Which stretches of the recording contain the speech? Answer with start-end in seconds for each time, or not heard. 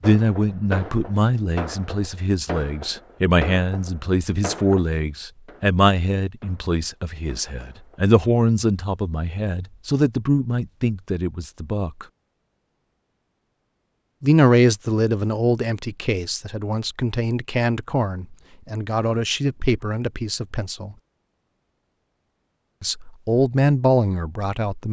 0.0-12.1, 14.2-20.9, 22.8-24.8.